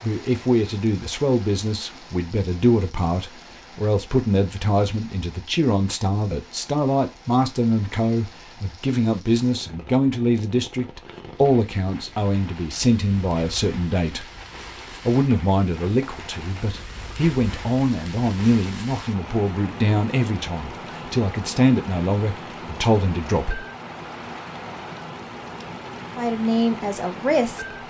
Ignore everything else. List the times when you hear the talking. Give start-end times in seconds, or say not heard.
0.0-14.2, 15.1-23.6, 26.1-27.8.